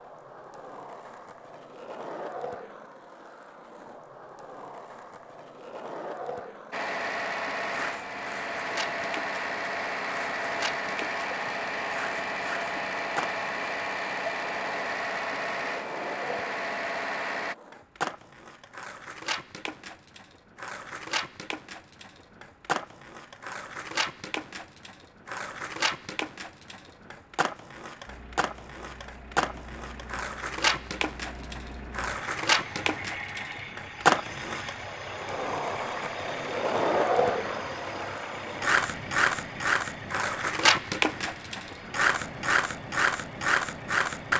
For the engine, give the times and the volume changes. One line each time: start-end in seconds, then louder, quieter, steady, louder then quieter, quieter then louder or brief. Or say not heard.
6.7-17.6 steady
28.1-44.3 louder then quieter.